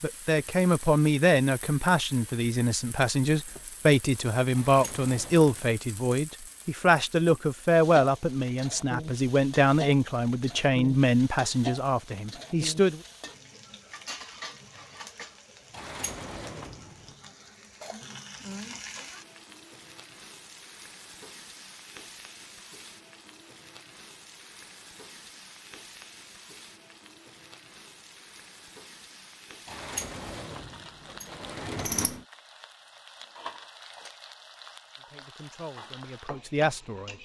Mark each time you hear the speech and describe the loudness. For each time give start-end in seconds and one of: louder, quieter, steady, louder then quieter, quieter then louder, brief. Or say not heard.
0.0-13.0 steady
35.0-37.1 brief.